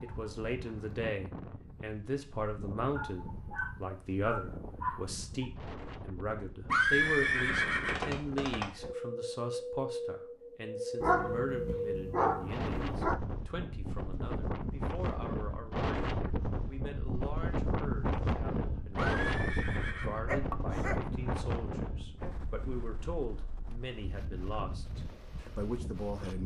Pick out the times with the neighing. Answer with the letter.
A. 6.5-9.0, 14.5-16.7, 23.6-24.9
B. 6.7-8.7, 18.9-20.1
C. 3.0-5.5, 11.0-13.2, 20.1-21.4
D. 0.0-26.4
B.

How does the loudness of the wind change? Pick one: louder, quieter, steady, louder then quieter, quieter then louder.
louder then quieter.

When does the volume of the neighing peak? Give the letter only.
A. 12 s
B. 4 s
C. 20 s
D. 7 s
D.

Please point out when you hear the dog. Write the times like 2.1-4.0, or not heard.
3.0-5.5, 11.0-13.2, 20.1-21.4.